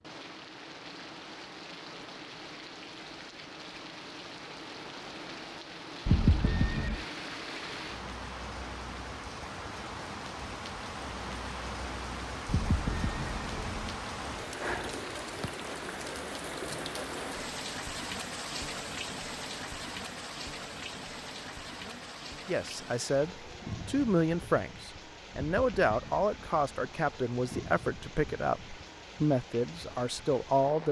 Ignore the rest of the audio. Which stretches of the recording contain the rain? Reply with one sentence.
You can hear the rain from 0.0 to 30.8 s.